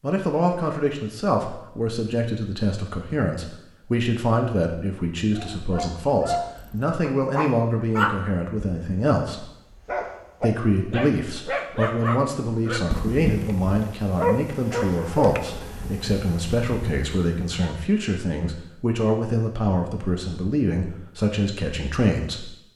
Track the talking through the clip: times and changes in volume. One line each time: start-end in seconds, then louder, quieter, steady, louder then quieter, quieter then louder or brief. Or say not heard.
0.0-9.4 steady
10.4-22.6 steady.